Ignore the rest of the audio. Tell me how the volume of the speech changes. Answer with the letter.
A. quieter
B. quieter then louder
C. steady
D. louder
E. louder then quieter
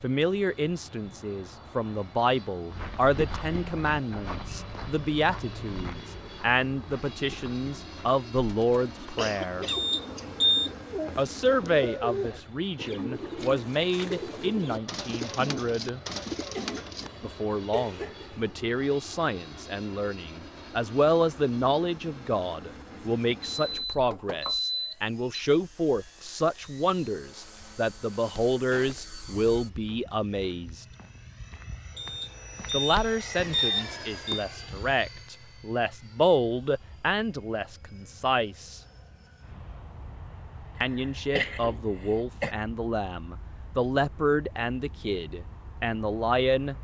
C.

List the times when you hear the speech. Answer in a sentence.
You can hear the speech from 0.0 to 9.7 s, from 11.2 to 16.0 s, from 17.2 to 30.9 s, from 32.7 to 38.8 s and from 40.8 to 46.7 s.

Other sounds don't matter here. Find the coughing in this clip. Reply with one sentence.
You can hear the coughing from 9.2 to 10.8 s, from 16.5 to 18.4 s and from 40.8 to 42.5 s.